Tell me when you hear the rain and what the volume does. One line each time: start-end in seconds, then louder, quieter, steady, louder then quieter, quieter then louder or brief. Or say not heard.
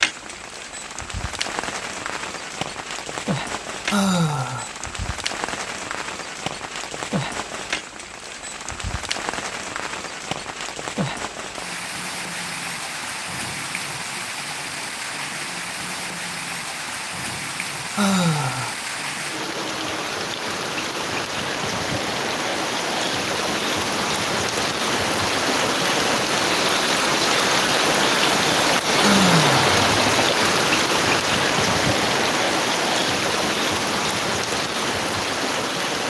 0.0-36.0 louder.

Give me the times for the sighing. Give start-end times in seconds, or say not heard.
3.9-4.7, 17.9-18.8, 29.0-29.6.